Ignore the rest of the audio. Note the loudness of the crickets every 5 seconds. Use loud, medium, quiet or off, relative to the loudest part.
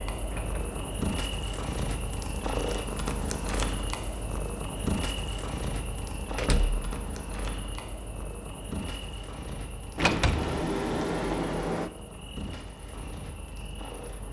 loud, loud, medium.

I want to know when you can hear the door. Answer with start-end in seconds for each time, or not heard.
0.2-0.8, 6.3-6.8, 9.9-11.9.